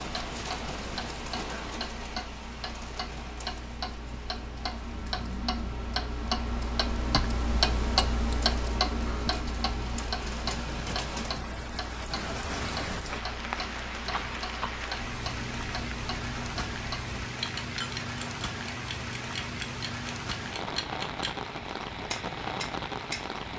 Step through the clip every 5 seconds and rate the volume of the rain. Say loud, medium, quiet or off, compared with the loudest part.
medium, medium, loud, loud, loud.